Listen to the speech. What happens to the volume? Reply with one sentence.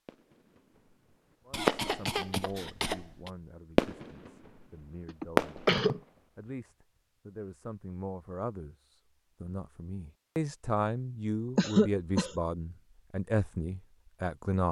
The loudness of the speech goes up.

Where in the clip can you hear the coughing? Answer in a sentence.
The coughing can be heard from 1.5 to 3.3 s, from 5.0 to 6.0 s and from 11.6 to 12.3 s.